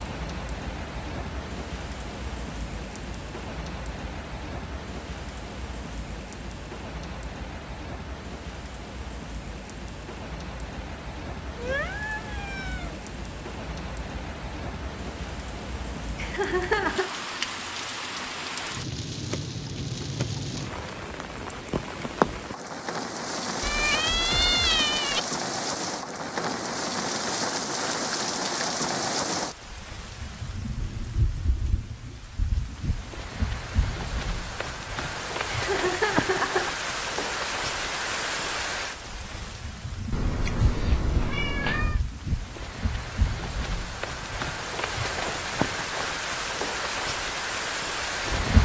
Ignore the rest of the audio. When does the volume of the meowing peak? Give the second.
25 s.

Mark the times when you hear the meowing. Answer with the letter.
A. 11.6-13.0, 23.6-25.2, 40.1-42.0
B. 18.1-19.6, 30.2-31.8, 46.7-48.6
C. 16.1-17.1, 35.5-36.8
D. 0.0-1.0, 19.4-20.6
A.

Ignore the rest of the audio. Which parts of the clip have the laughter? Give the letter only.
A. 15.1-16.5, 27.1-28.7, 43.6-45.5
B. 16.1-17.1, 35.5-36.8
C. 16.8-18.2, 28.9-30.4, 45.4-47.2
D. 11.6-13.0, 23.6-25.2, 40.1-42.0
B.